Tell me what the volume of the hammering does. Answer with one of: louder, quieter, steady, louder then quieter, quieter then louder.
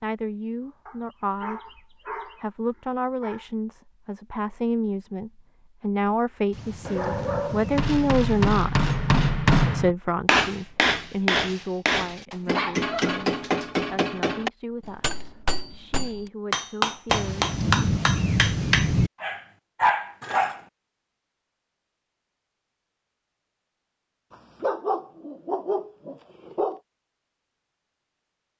quieter then louder.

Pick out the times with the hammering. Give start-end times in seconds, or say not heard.
7.7-18.9.